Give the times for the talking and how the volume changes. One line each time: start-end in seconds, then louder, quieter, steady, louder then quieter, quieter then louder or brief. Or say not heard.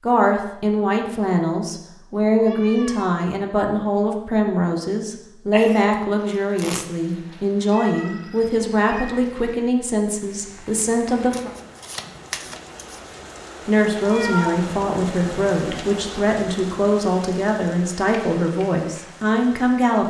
0.0-11.5 steady
13.7-20.0 steady.